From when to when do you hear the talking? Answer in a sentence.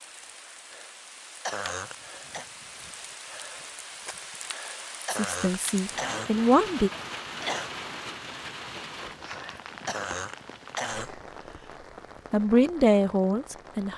You can hear the talking from 5.1 to 6.9 s and from 12.3 to 13.9 s.